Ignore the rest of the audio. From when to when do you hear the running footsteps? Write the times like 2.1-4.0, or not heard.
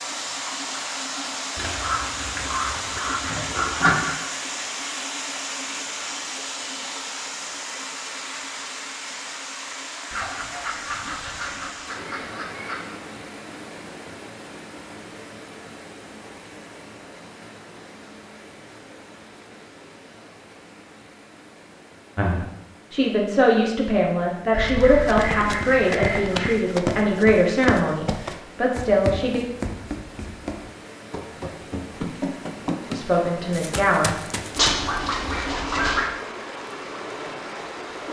24.6-34.8.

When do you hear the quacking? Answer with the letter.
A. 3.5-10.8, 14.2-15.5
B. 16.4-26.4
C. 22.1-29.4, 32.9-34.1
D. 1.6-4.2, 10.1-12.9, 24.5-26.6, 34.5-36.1
D.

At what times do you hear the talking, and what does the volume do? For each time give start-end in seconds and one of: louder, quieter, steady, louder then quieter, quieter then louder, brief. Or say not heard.
22.1-29.4 steady
32.9-34.1 brief.